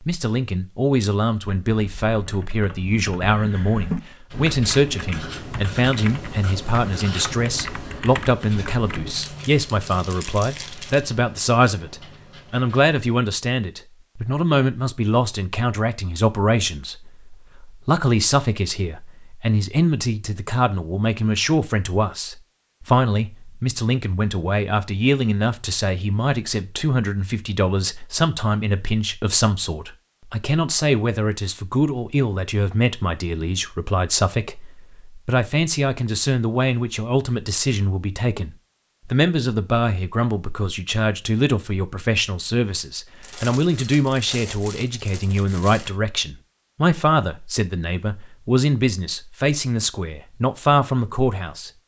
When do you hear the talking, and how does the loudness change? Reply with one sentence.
The talking can be heard from 0.0 to 51.7 s, at a steady volume.